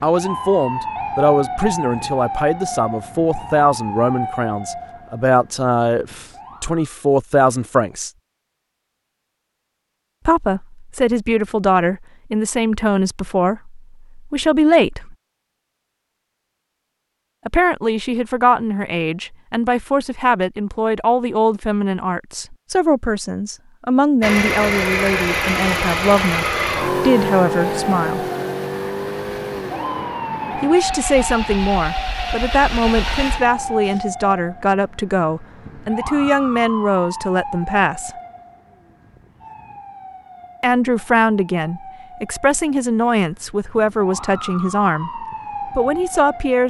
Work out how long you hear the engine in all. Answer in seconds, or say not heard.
10 s.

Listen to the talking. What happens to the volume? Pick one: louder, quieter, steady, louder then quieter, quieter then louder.
steady.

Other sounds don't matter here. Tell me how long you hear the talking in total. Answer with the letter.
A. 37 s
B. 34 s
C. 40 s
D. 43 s
A.